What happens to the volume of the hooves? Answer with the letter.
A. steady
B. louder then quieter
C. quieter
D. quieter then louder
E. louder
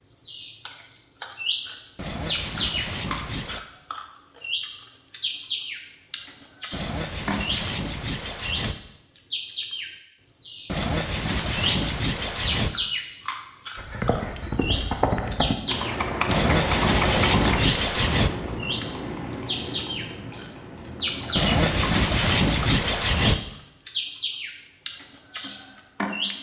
C.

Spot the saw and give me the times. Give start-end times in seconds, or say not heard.
1.9-3.6, 6.7-8.8, 10.7-12.7, 16.2-18.3, 21.4-23.4.